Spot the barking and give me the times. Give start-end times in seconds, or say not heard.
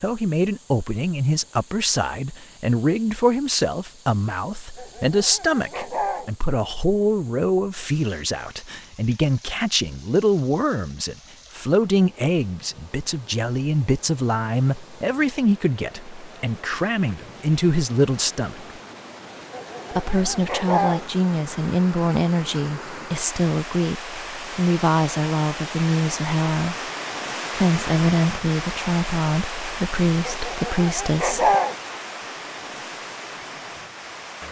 4.8-6.3, 19.5-21.1, 30.2-31.8.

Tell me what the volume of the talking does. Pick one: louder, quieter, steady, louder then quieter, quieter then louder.
steady.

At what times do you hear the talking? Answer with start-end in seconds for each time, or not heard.
0.0-18.8, 19.9-26.9, 27.6-31.6.